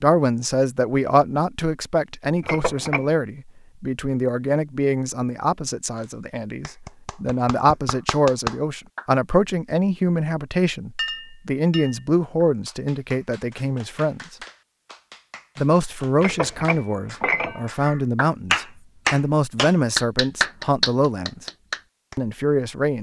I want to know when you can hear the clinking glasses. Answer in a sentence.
You can hear the clinking glasses from 2.4 to 3.0 s, from 10.9 to 12.0 s and from 16.1 to 17.7 s.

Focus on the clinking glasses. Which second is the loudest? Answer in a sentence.
The loudest moment of the clinking glasses is at 17 seconds.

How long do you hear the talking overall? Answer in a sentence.
The talking can be heard for 21 seconds in total.